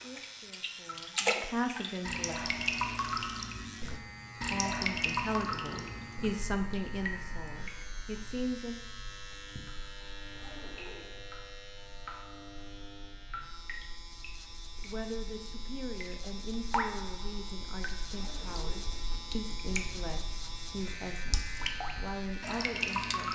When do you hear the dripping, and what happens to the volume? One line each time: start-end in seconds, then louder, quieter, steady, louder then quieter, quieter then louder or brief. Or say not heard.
0.0-23.2 quieter then louder.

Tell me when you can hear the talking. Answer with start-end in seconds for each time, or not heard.
0.0-2.4, 4.3-8.8, 14.8-23.2.